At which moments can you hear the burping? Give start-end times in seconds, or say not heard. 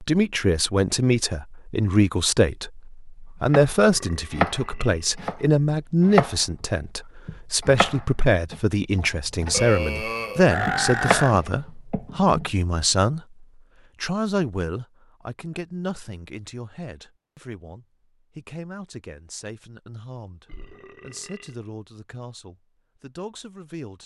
3.8-5.2, 9.5-11.3, 20.4-21.6.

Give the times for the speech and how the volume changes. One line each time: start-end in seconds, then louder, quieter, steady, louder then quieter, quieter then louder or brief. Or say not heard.
0.0-24.0 quieter.